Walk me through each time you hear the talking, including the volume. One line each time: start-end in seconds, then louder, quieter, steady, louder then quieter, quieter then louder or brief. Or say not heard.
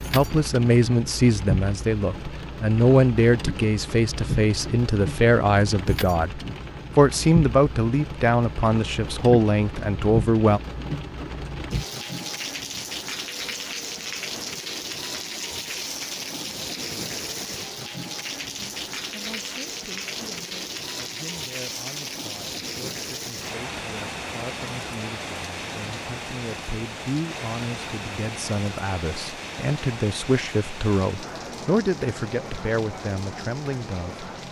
0.1-10.6 steady
18.6-34.2 louder.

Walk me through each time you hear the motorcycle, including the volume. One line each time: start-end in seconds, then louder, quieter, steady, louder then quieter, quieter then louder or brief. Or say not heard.
not heard.